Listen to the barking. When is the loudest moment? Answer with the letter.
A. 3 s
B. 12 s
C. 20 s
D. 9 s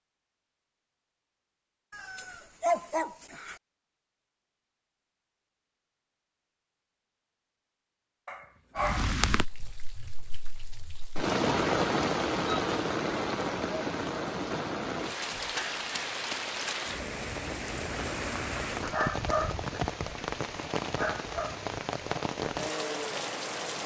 A.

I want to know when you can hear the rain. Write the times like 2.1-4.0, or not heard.
8.8-23.8.